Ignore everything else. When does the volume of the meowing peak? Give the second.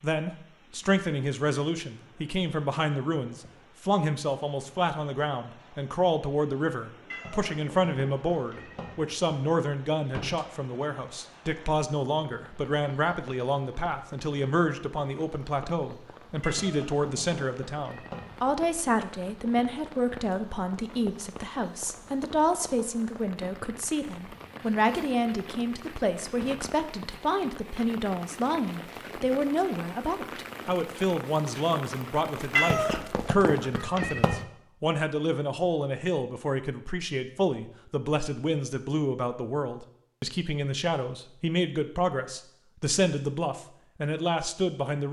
33 s.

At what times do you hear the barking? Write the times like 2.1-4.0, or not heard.
not heard.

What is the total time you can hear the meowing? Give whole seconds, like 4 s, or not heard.
6 s.